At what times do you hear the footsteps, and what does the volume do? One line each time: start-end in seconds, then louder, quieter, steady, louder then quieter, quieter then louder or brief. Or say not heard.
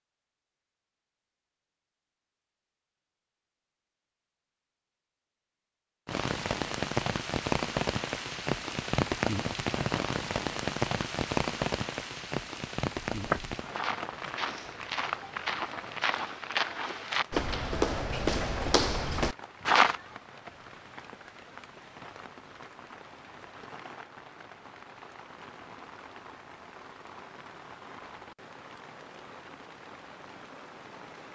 13.1-19.9 louder.